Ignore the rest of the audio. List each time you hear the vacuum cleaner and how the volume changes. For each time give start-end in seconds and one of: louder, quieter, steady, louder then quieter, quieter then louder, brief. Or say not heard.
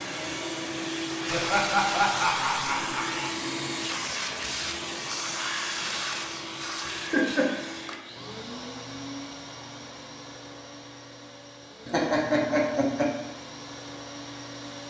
0.0-14.8 quieter.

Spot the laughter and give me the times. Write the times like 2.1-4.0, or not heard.
1.3-3.3, 6.8-8.0, 11.8-13.1.